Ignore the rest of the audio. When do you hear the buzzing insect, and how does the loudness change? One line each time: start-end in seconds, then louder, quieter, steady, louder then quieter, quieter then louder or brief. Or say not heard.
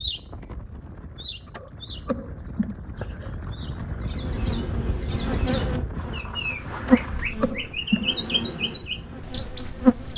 3.8-10.1 louder then quieter.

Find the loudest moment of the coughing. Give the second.
8 s.